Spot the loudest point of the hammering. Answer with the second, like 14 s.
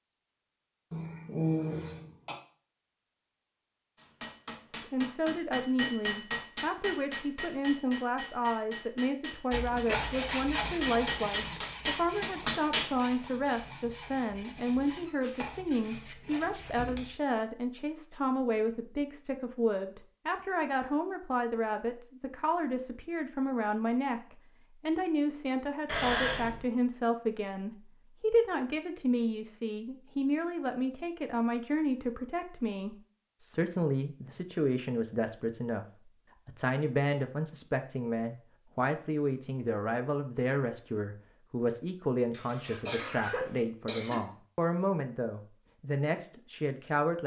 13 s.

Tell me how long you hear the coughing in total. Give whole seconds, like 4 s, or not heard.
4 s.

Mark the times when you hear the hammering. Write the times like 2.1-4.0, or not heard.
4.0-13.1.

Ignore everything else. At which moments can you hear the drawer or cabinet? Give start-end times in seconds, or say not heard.
not heard.